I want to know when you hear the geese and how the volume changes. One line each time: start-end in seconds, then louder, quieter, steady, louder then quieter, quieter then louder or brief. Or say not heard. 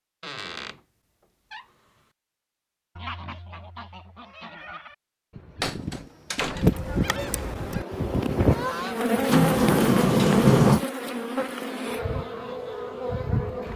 3.0-9.2 louder.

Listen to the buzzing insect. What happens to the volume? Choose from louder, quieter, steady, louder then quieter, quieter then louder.
louder then quieter.